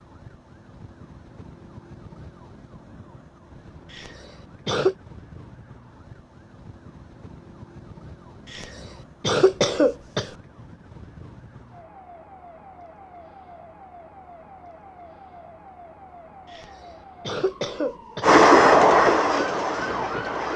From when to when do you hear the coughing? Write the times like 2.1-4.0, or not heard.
3.9-5.0, 8.5-10.3, 16.5-18.4.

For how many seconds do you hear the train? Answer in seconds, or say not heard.
2 s.